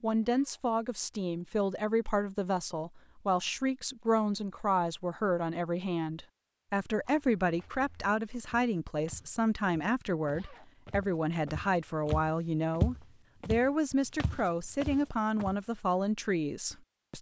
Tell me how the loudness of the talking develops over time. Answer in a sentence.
The loudness of the talking stays about the same.